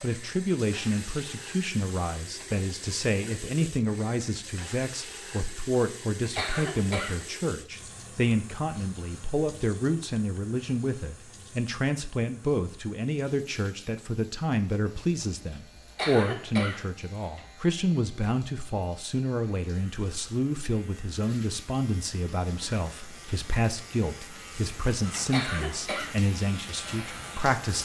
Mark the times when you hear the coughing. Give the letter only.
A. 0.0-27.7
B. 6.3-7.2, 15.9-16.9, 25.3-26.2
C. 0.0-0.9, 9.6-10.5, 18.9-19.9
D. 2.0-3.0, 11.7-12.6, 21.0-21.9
B.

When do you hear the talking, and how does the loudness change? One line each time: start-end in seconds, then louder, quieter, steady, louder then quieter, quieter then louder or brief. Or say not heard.
0.0-27.7 steady.